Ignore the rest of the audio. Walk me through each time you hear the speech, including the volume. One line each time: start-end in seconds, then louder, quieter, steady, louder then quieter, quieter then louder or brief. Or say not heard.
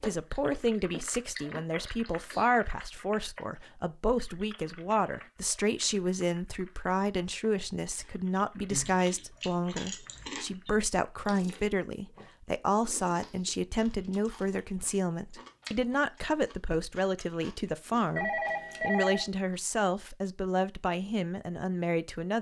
0.0-22.3 steady.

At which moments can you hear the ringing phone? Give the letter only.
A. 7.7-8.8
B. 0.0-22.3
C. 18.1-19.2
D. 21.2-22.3
C.